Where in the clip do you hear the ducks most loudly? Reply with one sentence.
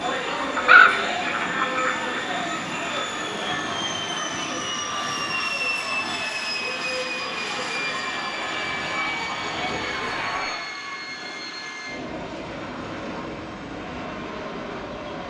The volume of the ducks peaks at 1 second.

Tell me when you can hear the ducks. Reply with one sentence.
The ducks can be heard from 0.6 to 2.2 s.